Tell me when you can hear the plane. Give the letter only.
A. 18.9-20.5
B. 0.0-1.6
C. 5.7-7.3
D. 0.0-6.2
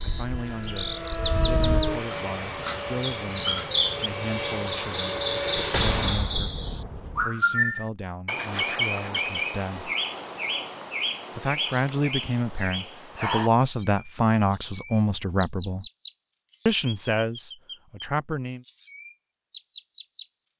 D.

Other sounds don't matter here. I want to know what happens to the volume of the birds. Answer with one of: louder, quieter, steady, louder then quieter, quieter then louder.
quieter.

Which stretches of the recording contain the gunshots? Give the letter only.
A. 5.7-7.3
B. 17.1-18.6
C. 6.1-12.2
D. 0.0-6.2
A.